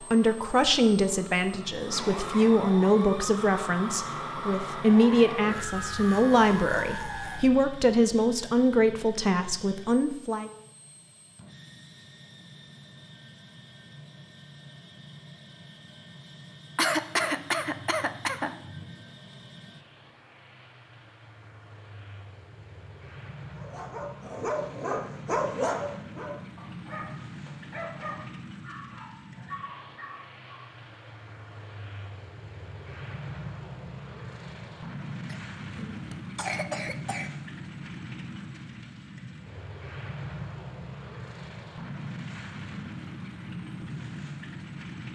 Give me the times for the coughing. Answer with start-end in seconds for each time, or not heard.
16.8-19.1, 35.2-37.3.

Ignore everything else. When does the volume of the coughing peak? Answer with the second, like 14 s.
17 s.